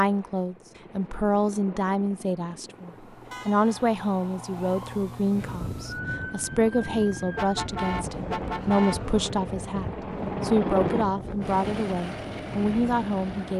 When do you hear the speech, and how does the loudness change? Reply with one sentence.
You can hear the speech from 0.0 to 13.5 s, at a steady volume.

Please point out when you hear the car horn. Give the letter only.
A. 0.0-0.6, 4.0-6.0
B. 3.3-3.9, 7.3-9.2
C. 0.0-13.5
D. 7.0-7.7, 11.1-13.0
B.